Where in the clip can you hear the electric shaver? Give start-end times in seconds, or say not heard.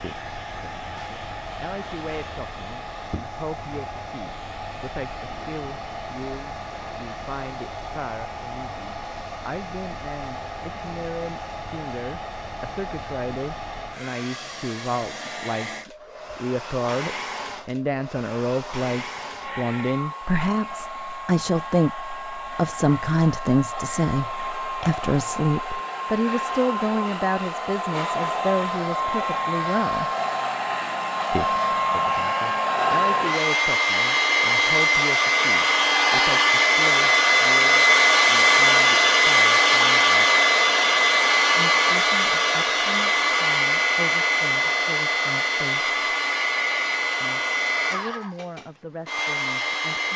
not heard.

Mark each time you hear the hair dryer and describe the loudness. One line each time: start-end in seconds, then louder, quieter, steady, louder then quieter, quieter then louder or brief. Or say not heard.
0.0-50.1 louder.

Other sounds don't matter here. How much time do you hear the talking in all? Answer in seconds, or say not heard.
46 s.